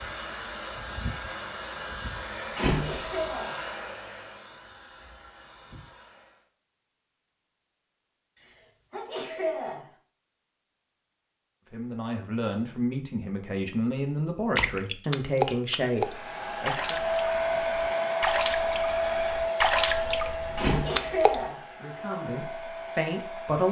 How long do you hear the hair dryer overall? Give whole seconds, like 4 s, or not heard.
14 s.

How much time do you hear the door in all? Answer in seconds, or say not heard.
2 s.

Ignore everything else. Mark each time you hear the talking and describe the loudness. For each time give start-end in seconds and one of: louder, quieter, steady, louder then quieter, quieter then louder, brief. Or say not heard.
11.7-17.0 steady
21.6-23.6 brief.